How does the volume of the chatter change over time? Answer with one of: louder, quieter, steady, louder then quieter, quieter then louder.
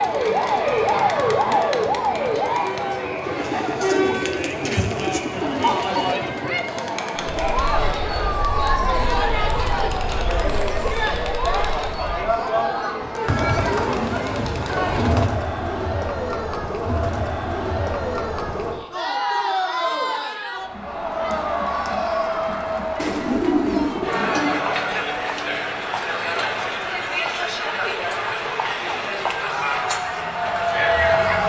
steady.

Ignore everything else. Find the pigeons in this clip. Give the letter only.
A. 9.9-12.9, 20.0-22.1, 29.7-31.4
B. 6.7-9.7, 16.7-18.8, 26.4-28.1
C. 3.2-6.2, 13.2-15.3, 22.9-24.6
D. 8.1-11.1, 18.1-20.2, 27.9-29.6
C.